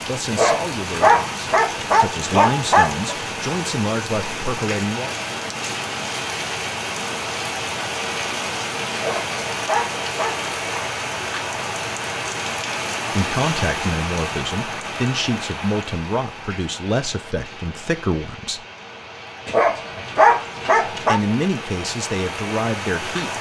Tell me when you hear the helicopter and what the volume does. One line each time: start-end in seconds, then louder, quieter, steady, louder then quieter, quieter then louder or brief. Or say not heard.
not heard.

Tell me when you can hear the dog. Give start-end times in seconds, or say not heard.
0.3-3.1, 8.9-10.4, 19.4-21.2.